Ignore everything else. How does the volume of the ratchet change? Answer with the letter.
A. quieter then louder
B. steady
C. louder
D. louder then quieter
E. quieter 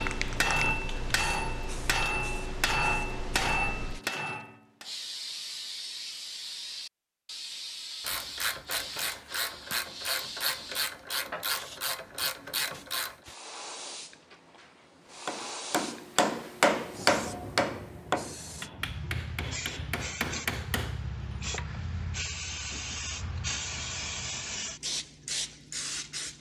B.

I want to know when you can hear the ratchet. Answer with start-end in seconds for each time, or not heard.
8.0-13.2.